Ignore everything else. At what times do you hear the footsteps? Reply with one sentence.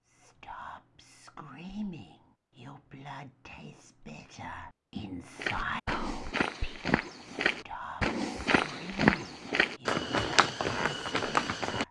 The footsteps can be heard from 5.3 to 11.8 s.